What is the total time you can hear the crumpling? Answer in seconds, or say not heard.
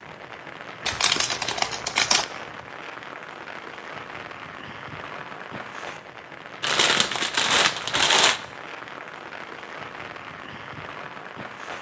3 s.